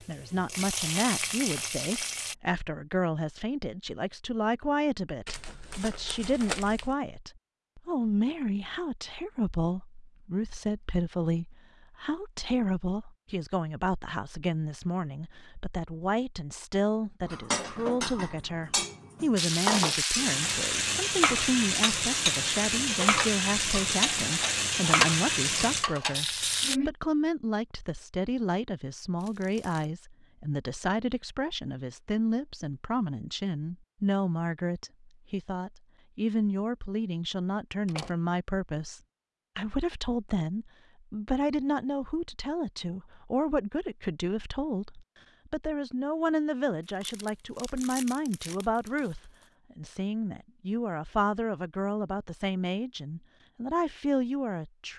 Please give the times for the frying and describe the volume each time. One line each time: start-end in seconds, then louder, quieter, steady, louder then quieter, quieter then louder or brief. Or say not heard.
0.0-2.4 brief
19.4-26.8 steady.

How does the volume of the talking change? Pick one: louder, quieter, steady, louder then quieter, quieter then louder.
steady.